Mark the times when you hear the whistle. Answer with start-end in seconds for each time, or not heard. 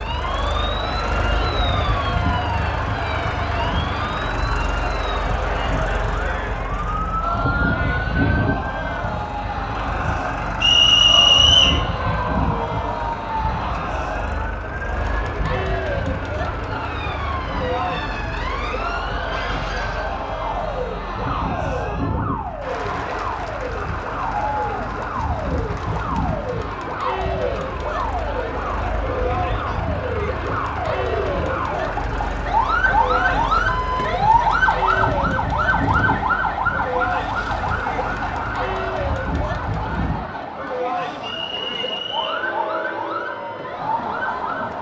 10.6-11.8, 41.2-42.4.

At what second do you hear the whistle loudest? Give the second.
11 s.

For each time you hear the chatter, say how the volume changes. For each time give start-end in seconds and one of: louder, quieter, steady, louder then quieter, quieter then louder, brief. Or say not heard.
0.1-44.7 steady.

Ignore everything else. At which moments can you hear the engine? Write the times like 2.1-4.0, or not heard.
0.0-40.2.